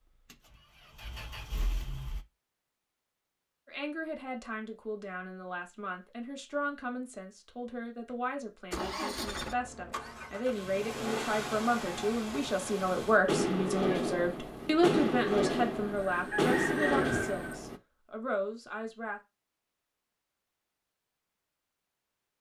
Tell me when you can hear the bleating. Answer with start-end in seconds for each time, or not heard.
not heard.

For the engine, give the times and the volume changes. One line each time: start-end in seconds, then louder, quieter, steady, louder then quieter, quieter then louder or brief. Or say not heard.
0.1-2.2 brief
8.7-17.8 louder.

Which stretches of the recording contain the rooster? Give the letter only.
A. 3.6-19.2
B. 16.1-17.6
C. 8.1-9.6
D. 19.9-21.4
B.